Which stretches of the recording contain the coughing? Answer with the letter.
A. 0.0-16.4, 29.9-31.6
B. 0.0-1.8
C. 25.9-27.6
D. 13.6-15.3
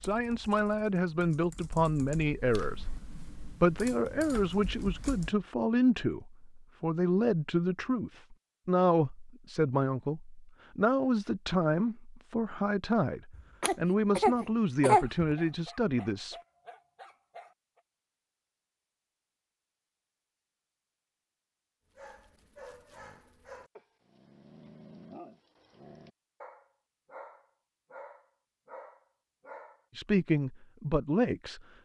D.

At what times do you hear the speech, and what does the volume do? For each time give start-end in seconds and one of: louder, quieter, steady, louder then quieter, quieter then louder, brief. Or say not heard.
0.0-16.4 steady
29.9-31.6 brief.